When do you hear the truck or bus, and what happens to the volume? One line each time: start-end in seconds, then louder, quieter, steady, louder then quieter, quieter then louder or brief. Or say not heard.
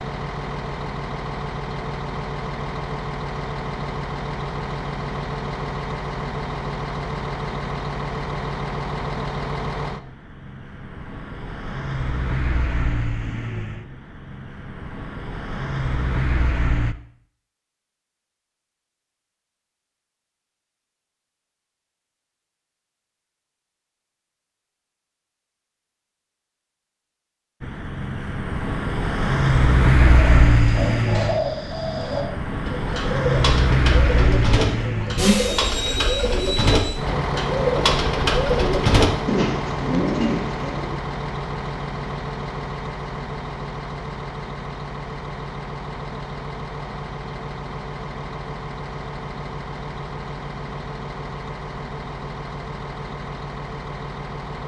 0.0-16.9 steady
27.6-54.6 quieter.